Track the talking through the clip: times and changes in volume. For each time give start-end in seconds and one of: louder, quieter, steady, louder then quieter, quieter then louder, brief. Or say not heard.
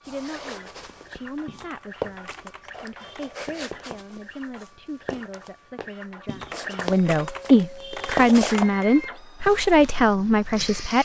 0.1-11.0 louder.